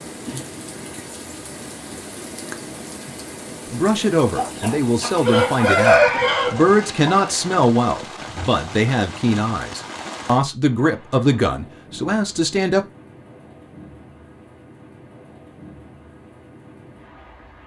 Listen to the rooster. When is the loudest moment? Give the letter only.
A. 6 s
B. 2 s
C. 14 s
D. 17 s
A.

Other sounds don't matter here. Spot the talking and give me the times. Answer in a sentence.
The talking can be heard from 3.7 to 12.8 s.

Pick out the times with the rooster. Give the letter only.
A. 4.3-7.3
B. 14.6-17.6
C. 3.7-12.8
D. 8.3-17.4
A.